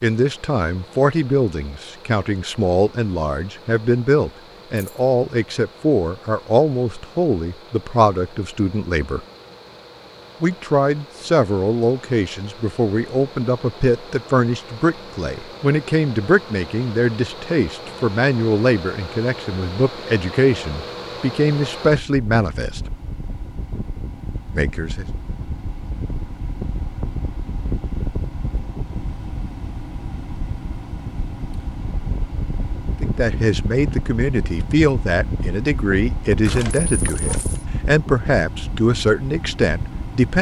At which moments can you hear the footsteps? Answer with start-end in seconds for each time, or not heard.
not heard.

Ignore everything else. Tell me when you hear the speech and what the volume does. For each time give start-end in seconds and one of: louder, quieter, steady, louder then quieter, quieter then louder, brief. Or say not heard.
0.0-9.2 steady
10.4-22.8 steady
24.5-25.1 brief
33.0-40.3 steady.